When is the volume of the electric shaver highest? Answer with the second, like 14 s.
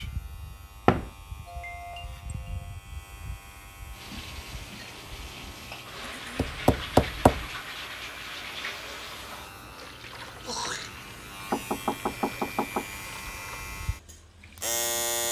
15 s.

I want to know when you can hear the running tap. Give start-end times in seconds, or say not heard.
3.9-15.2.